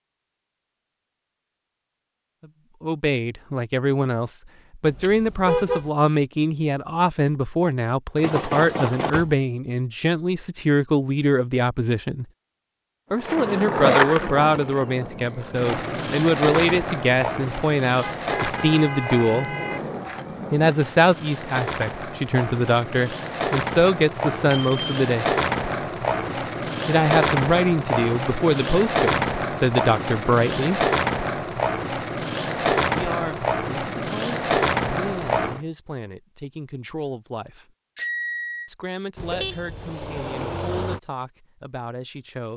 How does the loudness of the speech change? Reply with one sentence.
The loudness of the speech goes down.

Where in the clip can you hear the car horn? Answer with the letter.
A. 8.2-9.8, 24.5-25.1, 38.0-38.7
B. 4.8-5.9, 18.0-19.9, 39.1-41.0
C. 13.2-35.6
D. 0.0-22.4
B.